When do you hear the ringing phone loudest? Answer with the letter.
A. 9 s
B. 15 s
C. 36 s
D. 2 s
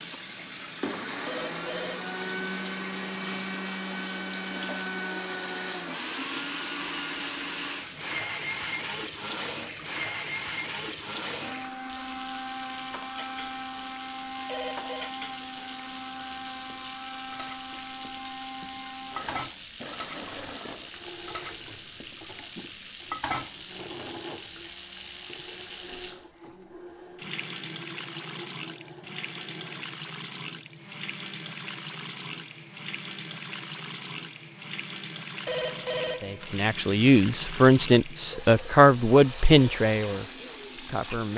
C.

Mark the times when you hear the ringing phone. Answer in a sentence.
You can hear the ringing phone from 1.2 to 2.1 s, from 14.4 to 15.1 s and from 35.5 to 36.6 s.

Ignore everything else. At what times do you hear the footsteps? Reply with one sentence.
You can't hear the footsteps here.